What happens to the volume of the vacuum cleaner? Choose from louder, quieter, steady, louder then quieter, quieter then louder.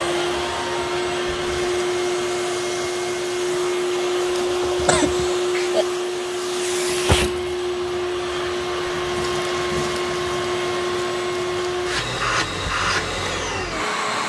steady.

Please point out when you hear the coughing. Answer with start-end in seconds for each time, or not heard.
4.8-5.8.